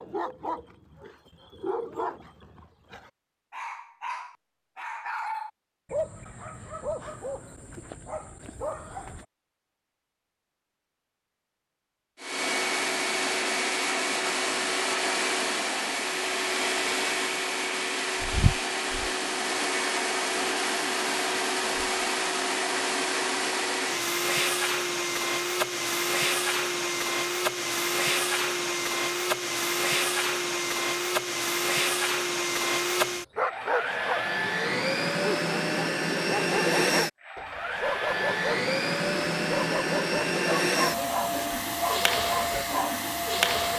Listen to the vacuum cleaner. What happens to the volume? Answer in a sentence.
The loudness of the vacuum cleaner stays about the same.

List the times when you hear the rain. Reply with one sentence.
The rain can't be heard in this clip.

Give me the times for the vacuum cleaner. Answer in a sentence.
The vacuum cleaner can be heard from 12.2 to 43.7 s.